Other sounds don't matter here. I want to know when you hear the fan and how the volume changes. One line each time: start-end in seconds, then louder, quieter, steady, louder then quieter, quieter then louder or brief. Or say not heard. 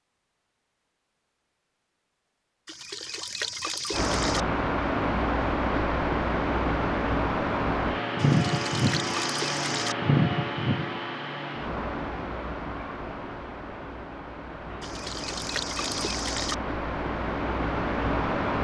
3.9-18.6 quieter then louder.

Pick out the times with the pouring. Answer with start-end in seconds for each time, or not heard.
2.6-4.5, 8.2-9.9, 14.8-16.6.